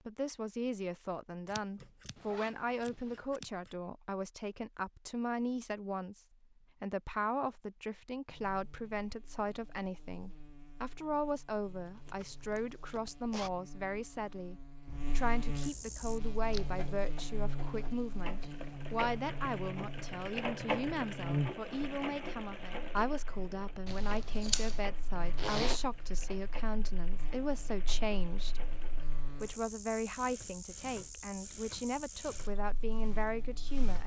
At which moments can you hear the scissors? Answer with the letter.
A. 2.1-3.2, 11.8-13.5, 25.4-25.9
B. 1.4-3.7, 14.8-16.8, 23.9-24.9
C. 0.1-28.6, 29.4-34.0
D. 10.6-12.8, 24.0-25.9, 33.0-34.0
B.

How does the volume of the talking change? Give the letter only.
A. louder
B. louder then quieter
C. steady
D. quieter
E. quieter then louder
C.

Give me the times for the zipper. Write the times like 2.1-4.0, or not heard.
2.1-3.2, 11.8-13.5, 25.4-25.9.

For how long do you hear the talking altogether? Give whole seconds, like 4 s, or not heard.
33 s.